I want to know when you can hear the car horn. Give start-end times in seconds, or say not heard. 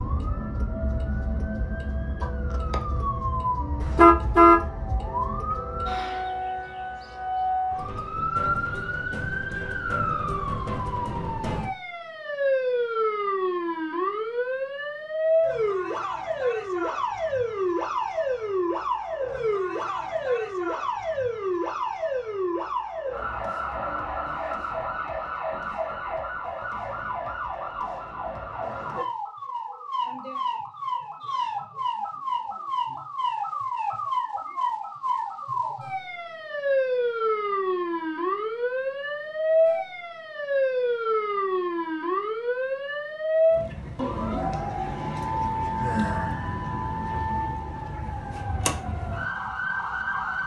3.8-4.6.